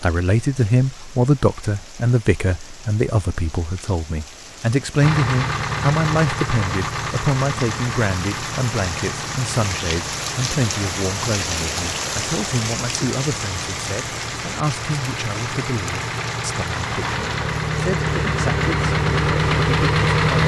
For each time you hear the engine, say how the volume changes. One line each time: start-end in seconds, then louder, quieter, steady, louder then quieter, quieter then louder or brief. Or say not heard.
5.0-20.4 quieter then louder.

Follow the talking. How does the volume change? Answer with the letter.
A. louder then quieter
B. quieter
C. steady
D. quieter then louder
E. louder
B.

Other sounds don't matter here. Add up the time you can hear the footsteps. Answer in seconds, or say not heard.
not heard.